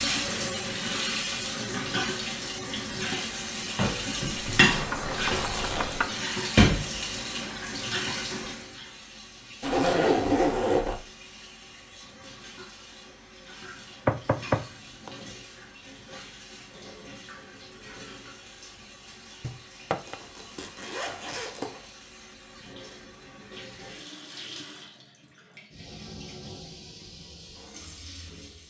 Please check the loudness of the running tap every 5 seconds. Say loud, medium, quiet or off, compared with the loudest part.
loud, loud, quiet, quiet, quiet, quiet.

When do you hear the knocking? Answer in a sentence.
The knocking can be heard from 4.9 to 6.1 s, from 14.1 to 15.1 s and from 19.4 to 20.1 s.